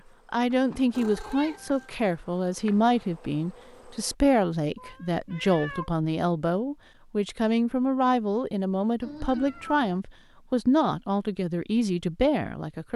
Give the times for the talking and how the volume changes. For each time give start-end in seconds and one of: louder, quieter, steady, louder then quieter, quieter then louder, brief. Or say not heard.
0.3-12.9 steady.